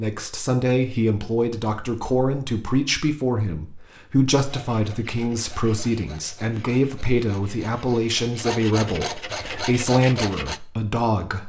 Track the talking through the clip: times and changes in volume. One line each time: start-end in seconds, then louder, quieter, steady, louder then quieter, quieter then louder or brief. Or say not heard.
0.0-11.4 steady.